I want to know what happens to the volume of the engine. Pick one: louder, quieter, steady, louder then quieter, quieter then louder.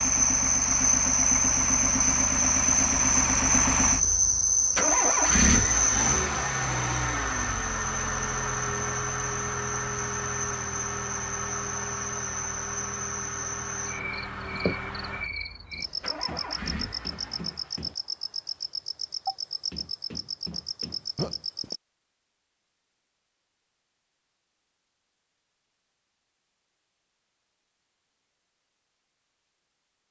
quieter.